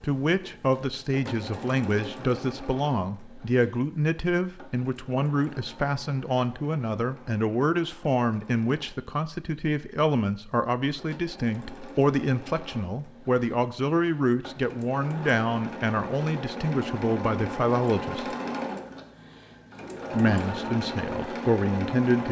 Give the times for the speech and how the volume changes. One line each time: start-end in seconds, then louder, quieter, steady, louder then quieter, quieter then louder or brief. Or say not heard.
0.0-18.4 steady
20.1-22.2 brief.